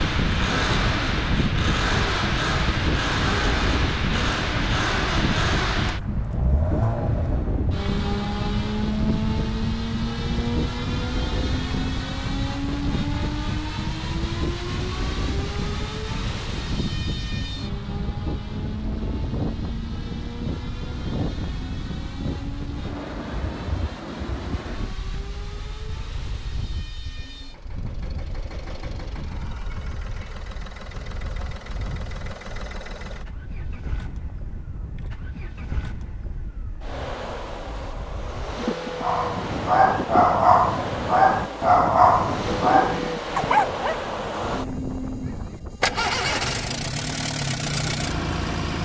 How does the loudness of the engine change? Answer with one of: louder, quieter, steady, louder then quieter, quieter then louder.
quieter then louder.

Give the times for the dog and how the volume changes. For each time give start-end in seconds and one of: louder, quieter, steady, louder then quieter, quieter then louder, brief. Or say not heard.
39.0-45.6 quieter.